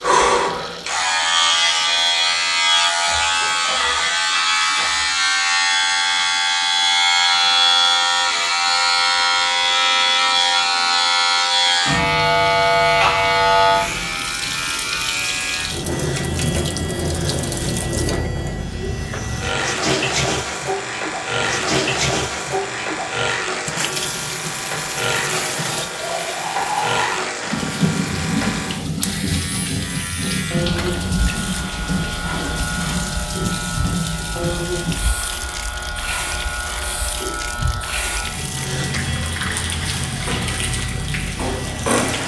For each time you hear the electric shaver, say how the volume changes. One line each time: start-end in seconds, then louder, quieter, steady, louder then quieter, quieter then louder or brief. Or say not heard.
0.0-42.2 quieter.